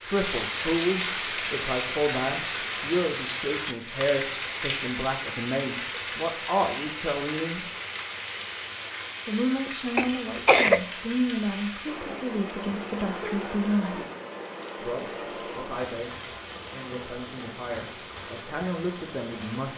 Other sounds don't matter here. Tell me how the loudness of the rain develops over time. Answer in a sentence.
The loudness of the rain goes down.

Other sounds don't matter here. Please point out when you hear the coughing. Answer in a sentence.
The coughing can be heard from 9.9 to 10.8 s.